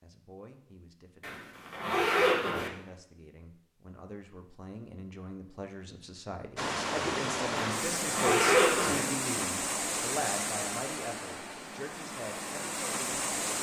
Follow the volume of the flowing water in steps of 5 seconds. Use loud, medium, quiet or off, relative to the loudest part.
off, loud, loud.